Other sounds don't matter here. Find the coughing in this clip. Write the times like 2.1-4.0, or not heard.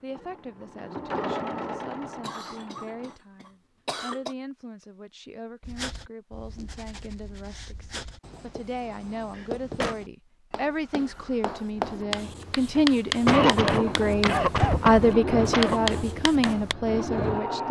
2.0-4.3, 9.3-9.9, 13.2-15.9.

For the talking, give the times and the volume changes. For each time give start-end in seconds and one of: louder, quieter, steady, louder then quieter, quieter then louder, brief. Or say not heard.
0.0-17.6 louder.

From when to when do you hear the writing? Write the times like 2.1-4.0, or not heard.
5.6-16.8.